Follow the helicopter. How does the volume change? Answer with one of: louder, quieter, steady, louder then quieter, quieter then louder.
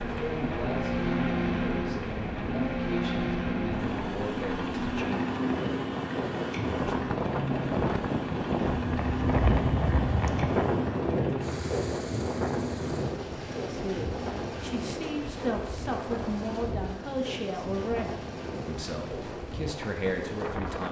quieter.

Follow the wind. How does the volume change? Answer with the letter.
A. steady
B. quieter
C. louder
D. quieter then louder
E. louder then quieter
E.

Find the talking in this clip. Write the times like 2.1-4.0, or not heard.
0.0-5.3, 13.7-20.8.